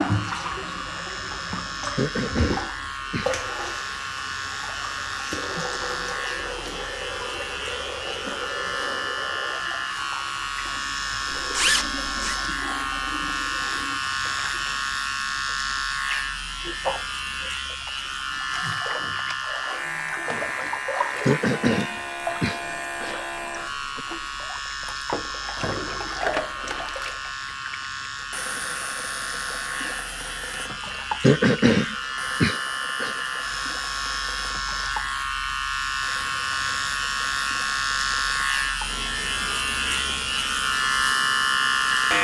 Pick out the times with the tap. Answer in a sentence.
You can hear the tap from 0.0 to 42.1 s.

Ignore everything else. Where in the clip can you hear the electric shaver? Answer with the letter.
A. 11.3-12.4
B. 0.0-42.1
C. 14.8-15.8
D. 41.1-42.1
B.